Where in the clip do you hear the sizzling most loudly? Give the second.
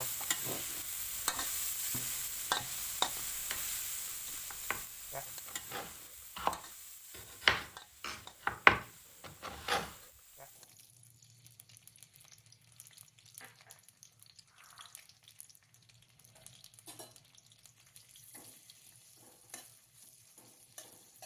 3 s.